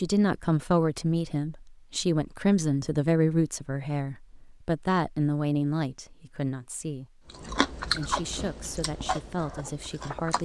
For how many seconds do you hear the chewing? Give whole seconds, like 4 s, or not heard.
3 s.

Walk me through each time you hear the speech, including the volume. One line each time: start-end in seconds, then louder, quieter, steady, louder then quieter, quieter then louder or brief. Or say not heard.
0.0-10.4 quieter.